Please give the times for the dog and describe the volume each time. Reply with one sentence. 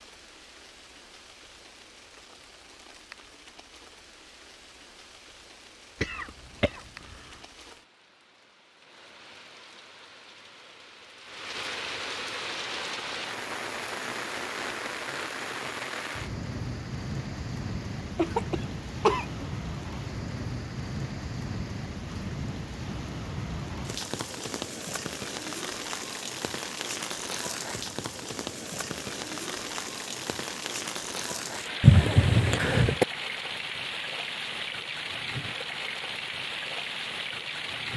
You can't hear the dog here.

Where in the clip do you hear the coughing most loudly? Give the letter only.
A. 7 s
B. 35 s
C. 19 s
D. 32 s
D.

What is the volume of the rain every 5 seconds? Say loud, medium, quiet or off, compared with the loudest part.
quiet, quiet, loud, loud, loud, loud, loud, loud.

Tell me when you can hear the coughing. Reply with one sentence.
The coughing can be heard from 6.0 to 7.2 s, from 18.1 to 19.4 s and from 31.8 to 33.0 s.